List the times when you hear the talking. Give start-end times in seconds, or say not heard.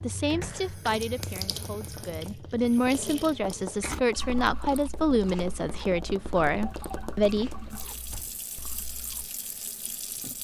0.0-7.5.